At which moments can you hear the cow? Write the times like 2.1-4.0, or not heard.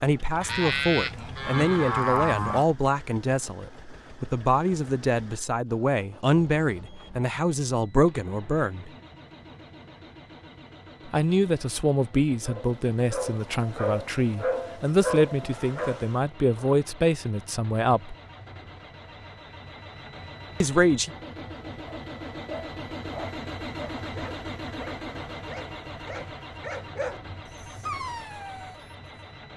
0.4-2.6.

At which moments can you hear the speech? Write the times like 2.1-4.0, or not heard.
0.0-8.9, 11.1-18.1, 20.6-21.1.